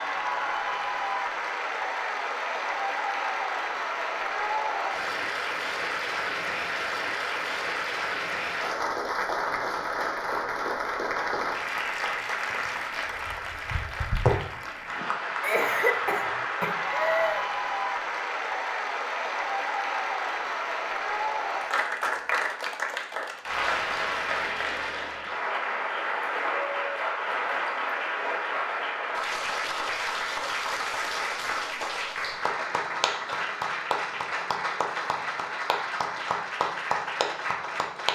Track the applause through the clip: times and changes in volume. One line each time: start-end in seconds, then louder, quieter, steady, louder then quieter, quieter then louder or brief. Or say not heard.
0.0-38.1 steady.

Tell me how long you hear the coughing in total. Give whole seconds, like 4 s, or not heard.
2 s.